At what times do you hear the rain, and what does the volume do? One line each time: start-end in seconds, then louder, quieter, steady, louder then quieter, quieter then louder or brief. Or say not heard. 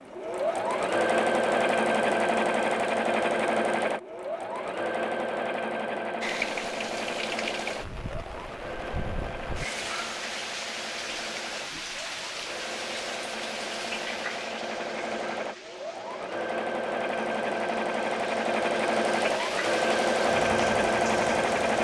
6.2-21.7 quieter then louder.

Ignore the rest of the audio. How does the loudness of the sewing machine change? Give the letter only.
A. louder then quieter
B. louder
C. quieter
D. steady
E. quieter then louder
E.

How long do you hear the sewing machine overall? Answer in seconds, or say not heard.
22 s.